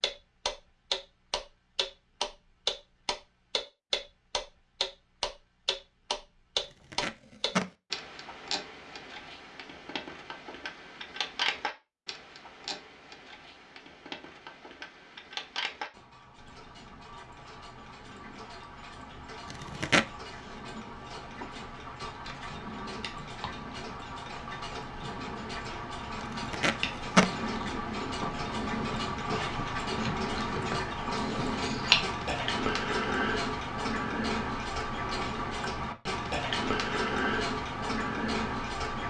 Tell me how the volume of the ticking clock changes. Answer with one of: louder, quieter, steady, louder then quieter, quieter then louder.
quieter then louder.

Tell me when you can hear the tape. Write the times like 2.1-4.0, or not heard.
6.5-7.7, 19.4-20.1, 26.2-27.3.